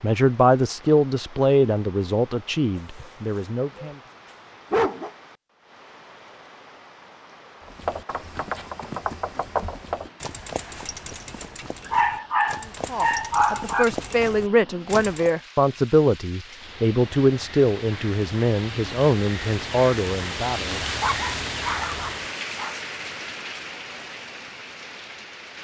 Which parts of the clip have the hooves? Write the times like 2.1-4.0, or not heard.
7.6-15.3.